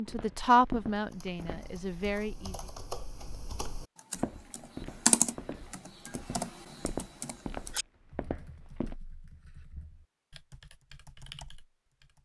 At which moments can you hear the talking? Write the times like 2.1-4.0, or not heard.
0.0-2.7.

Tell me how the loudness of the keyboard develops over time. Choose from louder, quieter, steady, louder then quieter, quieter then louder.
louder then quieter.